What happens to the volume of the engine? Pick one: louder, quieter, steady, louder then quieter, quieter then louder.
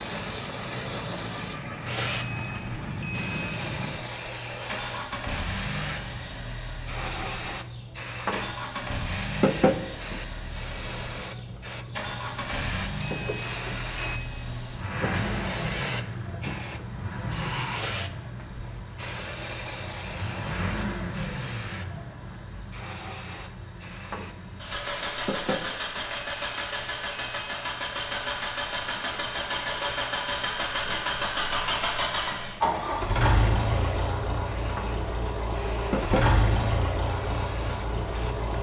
louder.